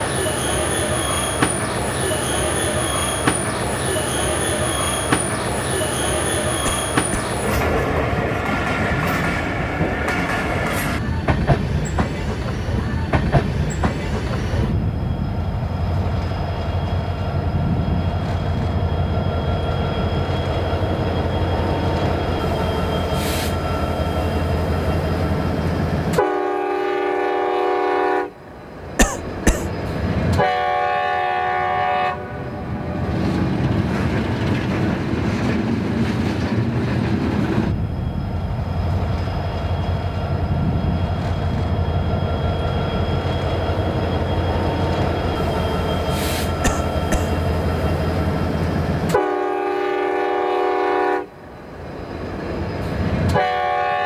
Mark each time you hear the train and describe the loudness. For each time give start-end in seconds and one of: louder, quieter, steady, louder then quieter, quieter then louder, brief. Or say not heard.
0.0-54.0 steady.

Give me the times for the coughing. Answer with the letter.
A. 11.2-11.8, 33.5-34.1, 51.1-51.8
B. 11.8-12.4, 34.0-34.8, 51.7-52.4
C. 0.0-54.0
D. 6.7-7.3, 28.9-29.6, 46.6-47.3
D.